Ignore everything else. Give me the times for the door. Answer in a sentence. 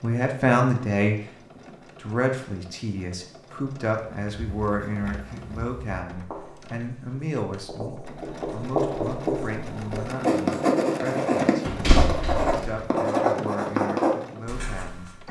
You can hear the door from 11.7 to 12.7 s.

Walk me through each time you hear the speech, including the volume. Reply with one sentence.
The speech can be heard from 0.0 to 15.1 s, getting quieter.